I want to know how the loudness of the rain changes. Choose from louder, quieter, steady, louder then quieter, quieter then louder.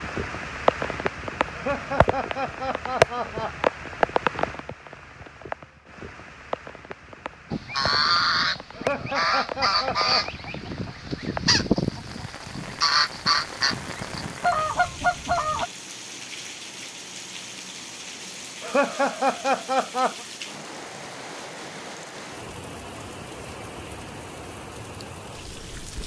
quieter.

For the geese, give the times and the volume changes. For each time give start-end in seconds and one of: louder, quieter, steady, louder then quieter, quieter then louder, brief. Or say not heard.
7.5-15.7 steady.